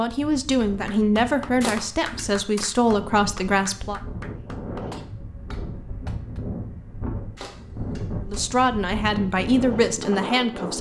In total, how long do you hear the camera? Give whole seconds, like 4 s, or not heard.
2 s.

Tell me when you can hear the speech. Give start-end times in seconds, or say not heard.
0.0-4.0, 8.2-10.7.